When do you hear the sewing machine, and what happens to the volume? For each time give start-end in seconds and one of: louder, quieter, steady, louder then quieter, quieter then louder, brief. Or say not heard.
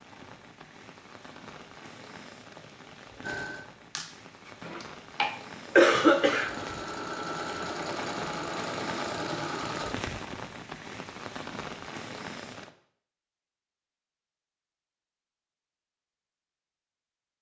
3.2-9.9 louder.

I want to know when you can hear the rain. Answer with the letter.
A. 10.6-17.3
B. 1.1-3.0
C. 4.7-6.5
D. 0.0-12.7
D.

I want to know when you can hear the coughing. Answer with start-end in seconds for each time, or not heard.
4.7-6.5.